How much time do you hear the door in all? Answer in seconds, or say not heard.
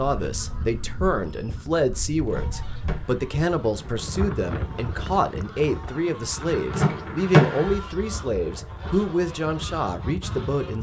2 s.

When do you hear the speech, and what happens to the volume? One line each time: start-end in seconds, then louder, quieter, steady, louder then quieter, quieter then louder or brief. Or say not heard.
0.0-10.7 steady.